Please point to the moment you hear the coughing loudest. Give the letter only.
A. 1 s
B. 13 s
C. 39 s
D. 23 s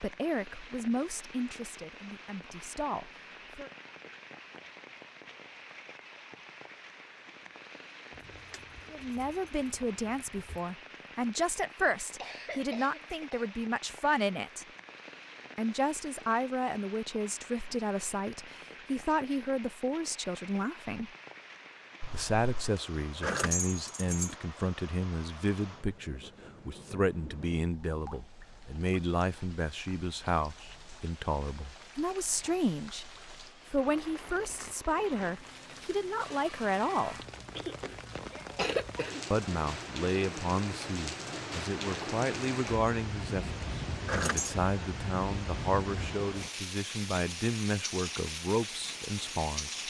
C.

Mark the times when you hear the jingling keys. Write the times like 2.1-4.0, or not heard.
8.1-10.8, 22.8-24.4, 43.6-44.5.